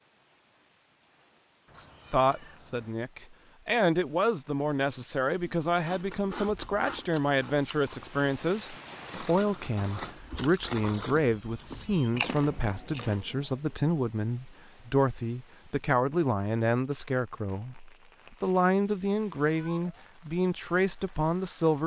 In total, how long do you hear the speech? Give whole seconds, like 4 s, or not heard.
20 s.